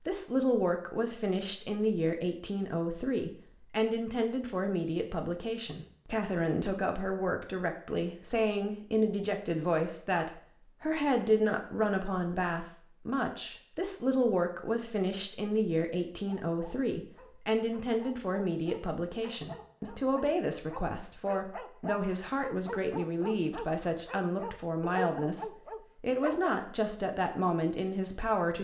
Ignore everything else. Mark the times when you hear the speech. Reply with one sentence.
You can hear the speech from 0.0 to 28.5 s.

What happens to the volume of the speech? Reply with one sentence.
The loudness of the speech stays about the same.